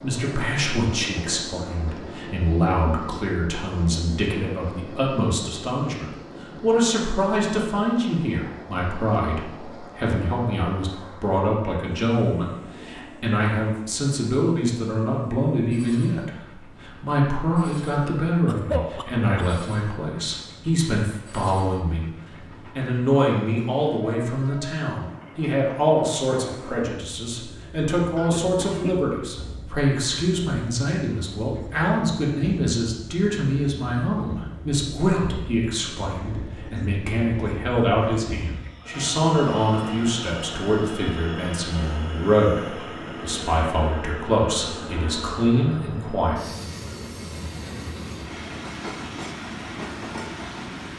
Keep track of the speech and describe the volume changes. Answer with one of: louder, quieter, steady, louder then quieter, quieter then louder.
steady.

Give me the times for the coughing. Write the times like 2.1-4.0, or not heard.
18.4-19.6, 28.1-29.1.